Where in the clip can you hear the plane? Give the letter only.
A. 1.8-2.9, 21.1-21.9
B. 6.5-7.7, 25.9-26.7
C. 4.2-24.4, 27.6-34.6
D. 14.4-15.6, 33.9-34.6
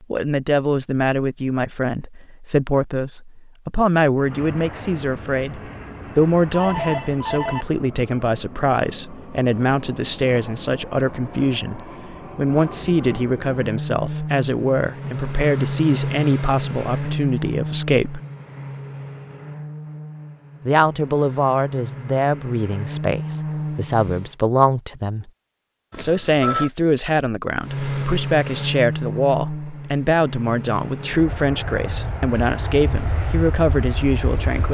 C.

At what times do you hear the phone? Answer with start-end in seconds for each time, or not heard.
6.5-7.7, 25.9-26.7.